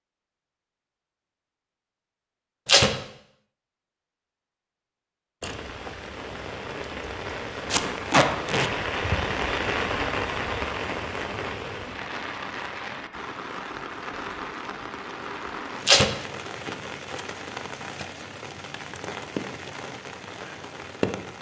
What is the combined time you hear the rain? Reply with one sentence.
The rain can be heard for 16 seconds in total.